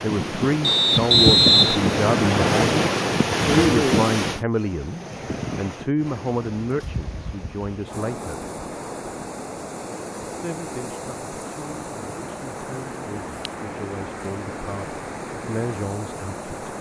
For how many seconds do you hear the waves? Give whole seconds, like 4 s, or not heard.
17 s.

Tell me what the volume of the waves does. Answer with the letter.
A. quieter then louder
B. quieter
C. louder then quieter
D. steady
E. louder
B.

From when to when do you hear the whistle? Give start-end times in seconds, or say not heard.
0.6-2.6.